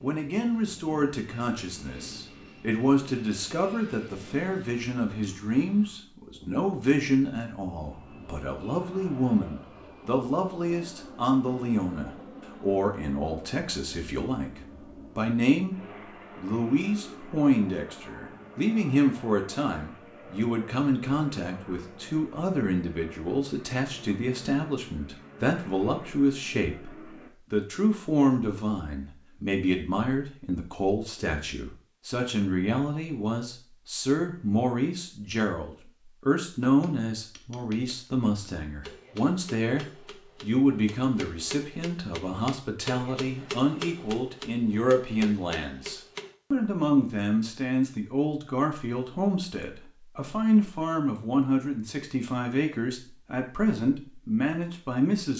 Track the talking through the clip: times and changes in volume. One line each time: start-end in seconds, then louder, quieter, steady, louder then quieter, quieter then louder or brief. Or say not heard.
0.0-55.3 steady.